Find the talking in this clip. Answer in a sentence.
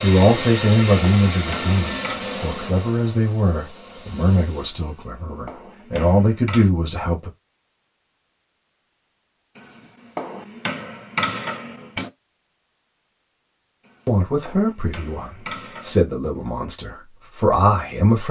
You can hear the talking from 0.0 to 7.3 s and from 14.1 to 18.2 s.